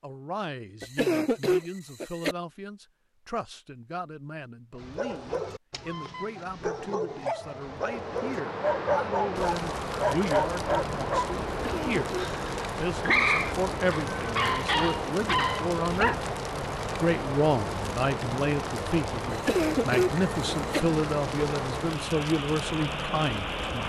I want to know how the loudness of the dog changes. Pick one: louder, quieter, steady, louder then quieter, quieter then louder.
louder.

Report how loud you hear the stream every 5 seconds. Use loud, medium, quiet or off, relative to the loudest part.
off, loud, loud, loud, loud.